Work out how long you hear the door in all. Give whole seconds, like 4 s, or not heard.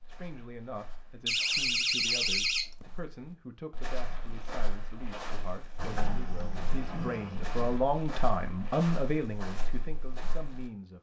4 s.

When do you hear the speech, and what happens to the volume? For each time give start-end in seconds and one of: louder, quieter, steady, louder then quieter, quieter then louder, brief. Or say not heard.
0.1-10.9 louder.